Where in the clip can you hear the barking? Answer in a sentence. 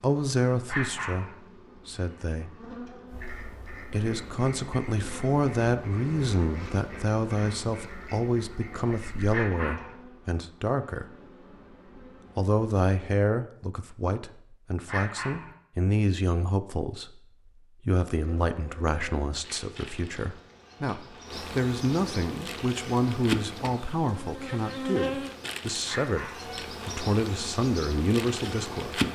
The barking can be heard from 0.7 to 1.4 s, from 9.3 to 9.9 s, from 14.8 to 15.6 s and from 25.9 to 26.5 s.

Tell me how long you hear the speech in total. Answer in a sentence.
You can hear the speech for 27 seconds altogether.